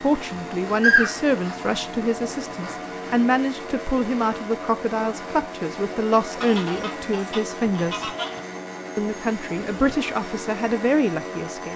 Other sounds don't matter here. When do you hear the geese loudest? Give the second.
1 s.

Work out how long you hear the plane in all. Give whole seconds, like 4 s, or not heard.
12 s.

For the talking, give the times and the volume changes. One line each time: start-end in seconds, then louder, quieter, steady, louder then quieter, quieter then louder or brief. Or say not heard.
0.0-8.1 steady
8.9-11.7 brief.